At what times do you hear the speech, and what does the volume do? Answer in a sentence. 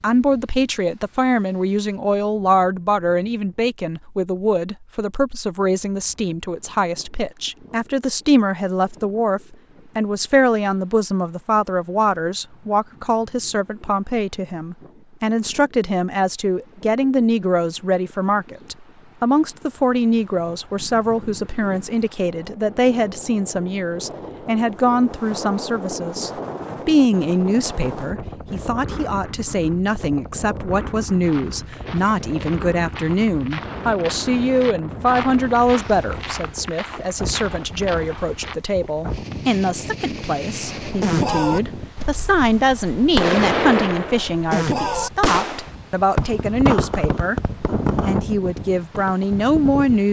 The speech can be heard from 0.0 to 47.4 s, at a steady volume; and briefly from 48.0 to 50.0 s.